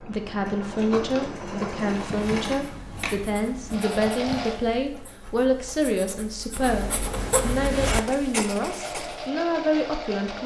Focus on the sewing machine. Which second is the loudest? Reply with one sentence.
The loudest moment of the sewing machine is at 2 seconds.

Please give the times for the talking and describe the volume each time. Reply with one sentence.
You can hear the talking from 0.0 to 10.4 s, at a steady volume.